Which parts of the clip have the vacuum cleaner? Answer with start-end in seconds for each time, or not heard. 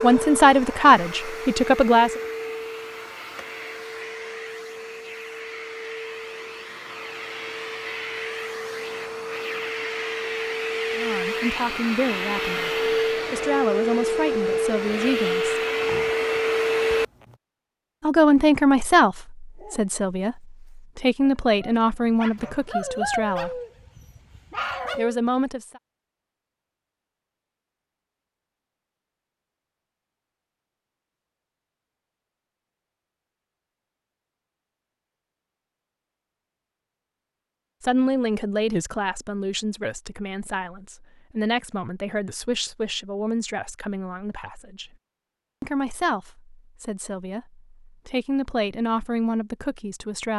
0.0-17.1.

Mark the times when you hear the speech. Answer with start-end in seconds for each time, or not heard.
0.0-2.2, 10.9-15.6, 18.0-23.6, 24.9-25.8, 37.8-44.9, 45.6-50.3.